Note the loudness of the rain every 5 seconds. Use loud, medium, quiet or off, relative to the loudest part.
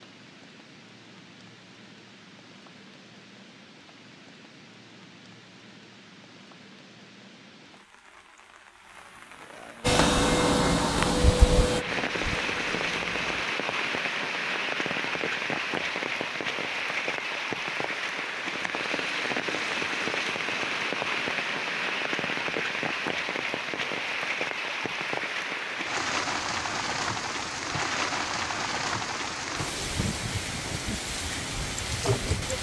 quiet, quiet, loud, loud, loud, loud, loud.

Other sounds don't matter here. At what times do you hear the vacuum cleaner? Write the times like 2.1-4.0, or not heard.
9.8-13.4.